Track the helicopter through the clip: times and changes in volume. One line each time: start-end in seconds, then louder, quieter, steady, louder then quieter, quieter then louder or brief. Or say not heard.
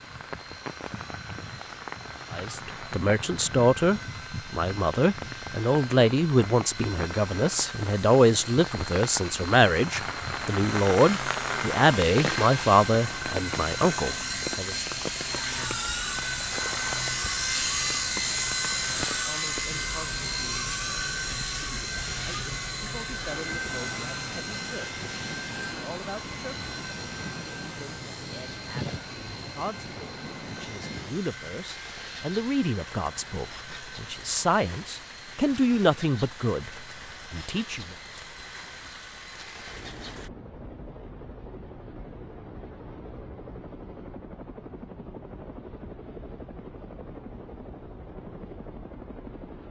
0.0-49.6 louder then quieter.